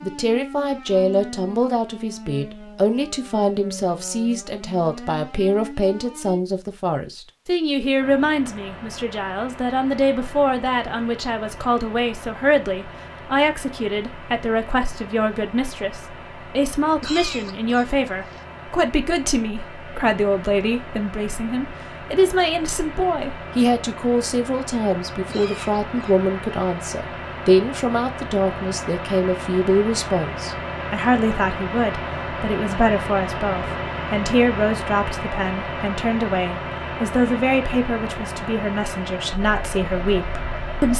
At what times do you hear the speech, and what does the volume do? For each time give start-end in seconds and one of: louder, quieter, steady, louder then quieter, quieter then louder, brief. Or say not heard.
0.0-40.9 steady.